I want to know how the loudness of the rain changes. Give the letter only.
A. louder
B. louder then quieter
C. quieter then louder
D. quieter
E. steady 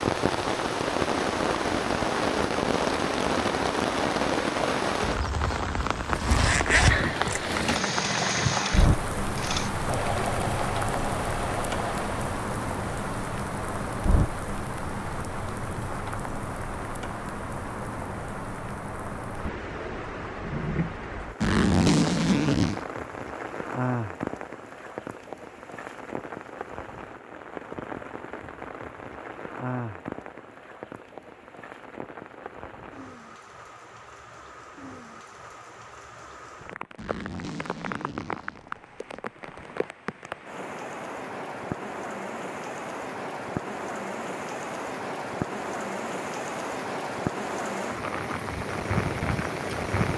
C.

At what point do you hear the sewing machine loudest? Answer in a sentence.
The volume of the sewing machine peaks at 8 seconds.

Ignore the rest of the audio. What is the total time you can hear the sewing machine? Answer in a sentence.
You can hear the sewing machine for 6 seconds altogether.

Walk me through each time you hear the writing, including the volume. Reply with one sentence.
The writing can't be heard in this clip.